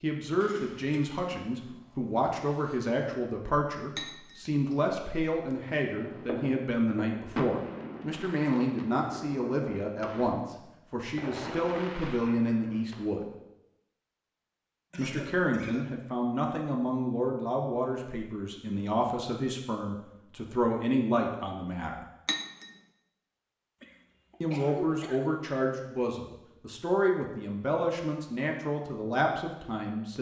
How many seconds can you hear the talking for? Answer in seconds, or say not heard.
26 s.